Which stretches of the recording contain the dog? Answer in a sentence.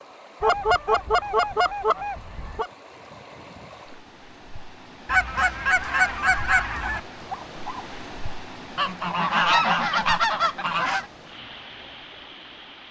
The dog can be heard from 6.8 to 8.0 s.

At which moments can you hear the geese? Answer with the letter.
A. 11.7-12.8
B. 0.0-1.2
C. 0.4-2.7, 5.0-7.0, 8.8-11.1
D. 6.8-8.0
C.